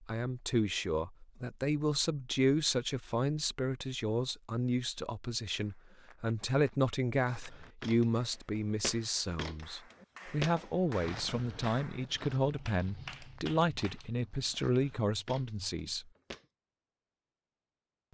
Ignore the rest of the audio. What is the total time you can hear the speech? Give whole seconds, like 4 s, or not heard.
16 s.